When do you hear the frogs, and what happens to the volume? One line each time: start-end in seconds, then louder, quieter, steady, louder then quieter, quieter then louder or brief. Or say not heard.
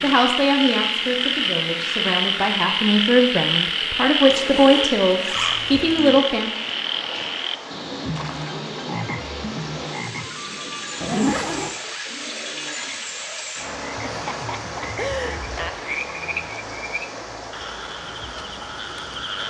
0.0-19.4 quieter.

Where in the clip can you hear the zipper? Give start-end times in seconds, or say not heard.
4.3-5.9, 11.0-11.7.